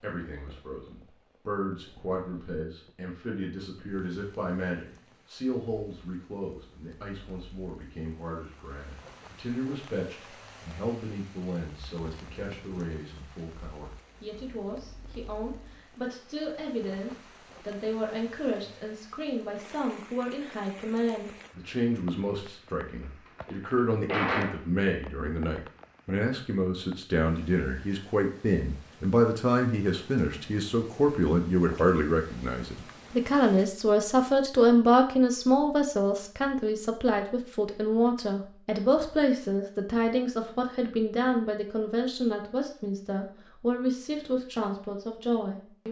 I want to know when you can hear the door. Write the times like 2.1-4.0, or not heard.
23.2-24.6.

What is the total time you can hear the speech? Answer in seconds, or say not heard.
46 s.